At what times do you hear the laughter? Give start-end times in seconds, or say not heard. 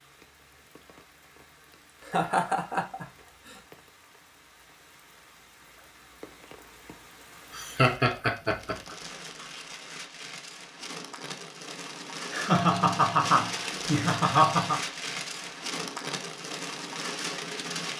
2.0-3.5, 7.5-8.9, 12.3-14.8.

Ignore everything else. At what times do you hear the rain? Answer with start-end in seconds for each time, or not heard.
0.0-17.9.